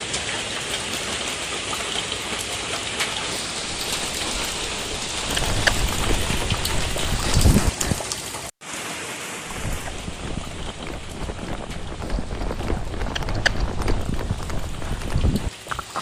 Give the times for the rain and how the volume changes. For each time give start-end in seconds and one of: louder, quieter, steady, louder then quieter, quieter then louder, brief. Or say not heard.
0.0-15.9 quieter.